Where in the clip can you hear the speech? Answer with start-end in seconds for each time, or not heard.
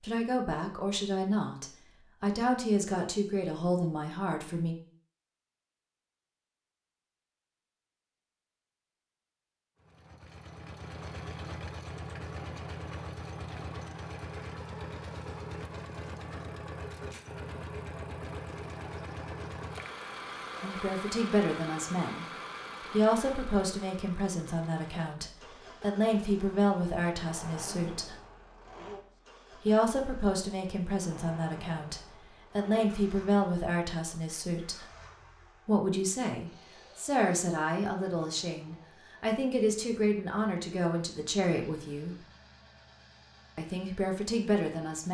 0.0-4.8, 20.6-22.2, 22.9-28.1, 29.6-34.9, 35.6-42.2, 43.5-45.0.